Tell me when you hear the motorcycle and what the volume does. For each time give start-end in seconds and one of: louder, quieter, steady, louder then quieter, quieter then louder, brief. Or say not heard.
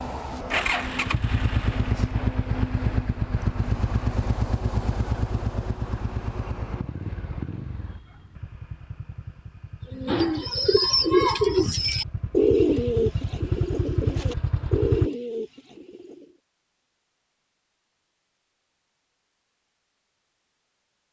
0.0-15.1 quieter then louder.